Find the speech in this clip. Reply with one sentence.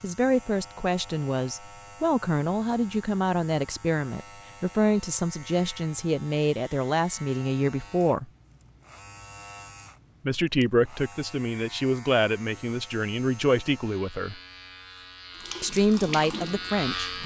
The speech can be heard from 0.0 to 8.2 s, from 10.2 to 14.3 s and from 15.6 to 17.2 s.